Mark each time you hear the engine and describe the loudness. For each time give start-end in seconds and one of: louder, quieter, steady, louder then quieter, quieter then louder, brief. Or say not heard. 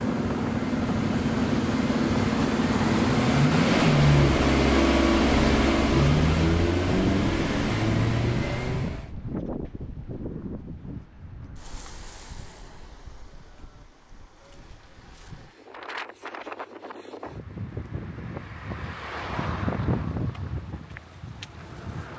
0.0-9.1 louder then quieter.